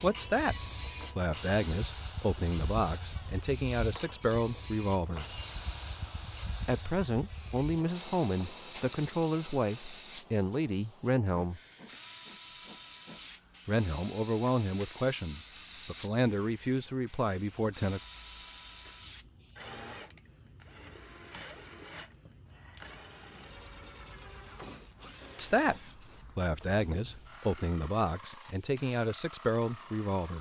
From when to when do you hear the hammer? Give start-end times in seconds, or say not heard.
not heard.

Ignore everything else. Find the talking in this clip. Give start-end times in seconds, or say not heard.
0.0-0.6, 1.1-5.4, 6.7-11.6, 13.7-18.0, 25.4-30.3.